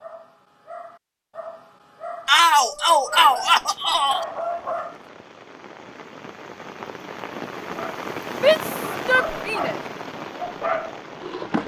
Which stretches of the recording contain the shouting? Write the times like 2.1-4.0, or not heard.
2.2-4.2, 8.3-9.8.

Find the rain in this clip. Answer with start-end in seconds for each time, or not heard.
3.0-11.6.